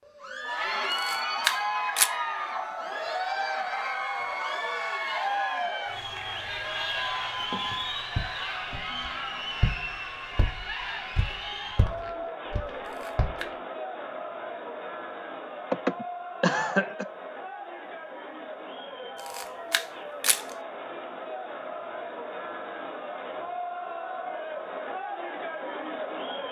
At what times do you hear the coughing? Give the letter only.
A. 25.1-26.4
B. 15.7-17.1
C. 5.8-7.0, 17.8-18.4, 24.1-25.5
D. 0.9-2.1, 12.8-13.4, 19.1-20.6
B.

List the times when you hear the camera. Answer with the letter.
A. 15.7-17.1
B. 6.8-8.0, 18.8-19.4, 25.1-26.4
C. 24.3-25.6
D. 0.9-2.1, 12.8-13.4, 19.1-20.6
D.